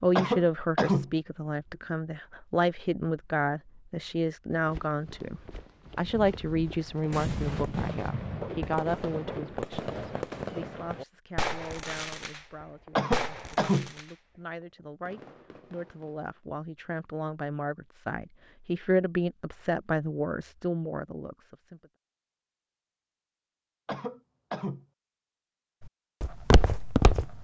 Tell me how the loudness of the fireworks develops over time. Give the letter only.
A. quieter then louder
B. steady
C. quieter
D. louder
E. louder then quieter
C.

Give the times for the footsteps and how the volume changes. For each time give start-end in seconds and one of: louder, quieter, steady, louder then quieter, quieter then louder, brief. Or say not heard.
4.5-10.6 louder
26.2-27.3 brief.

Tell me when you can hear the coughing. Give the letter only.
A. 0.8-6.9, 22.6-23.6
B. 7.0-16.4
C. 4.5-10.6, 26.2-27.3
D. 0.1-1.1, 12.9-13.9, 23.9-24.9
D.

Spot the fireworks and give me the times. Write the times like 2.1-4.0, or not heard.
7.0-16.4.